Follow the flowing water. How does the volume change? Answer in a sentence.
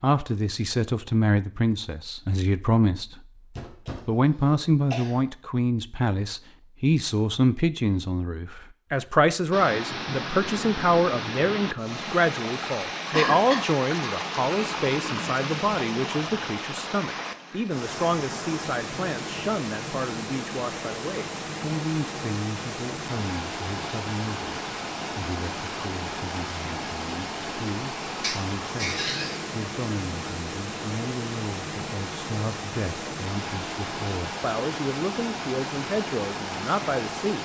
The loudness of the flowing water stays about the same.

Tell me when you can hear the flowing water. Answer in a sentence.
The flowing water can be heard from 9.5 to 37.4 s.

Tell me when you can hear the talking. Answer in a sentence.
You can hear the talking from 0.0 to 3.2 s and from 4.0 to 37.4 s.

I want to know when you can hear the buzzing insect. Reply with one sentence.
You can't hear the buzzing insect here.